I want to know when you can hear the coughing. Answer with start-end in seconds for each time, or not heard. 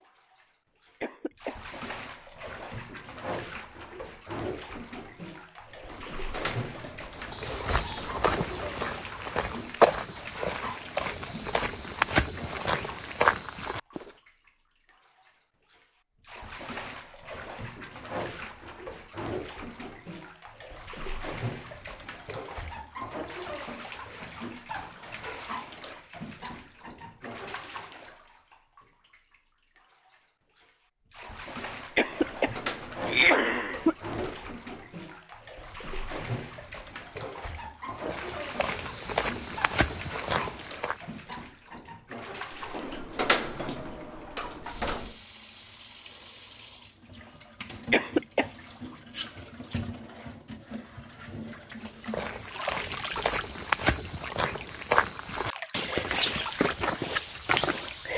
1.0-1.6, 31.9-34.0, 47.9-48.5.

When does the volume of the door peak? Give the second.
43 s.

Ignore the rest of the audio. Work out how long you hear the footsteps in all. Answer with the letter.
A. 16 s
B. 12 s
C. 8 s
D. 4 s
A.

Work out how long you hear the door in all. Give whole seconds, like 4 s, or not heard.
8 s.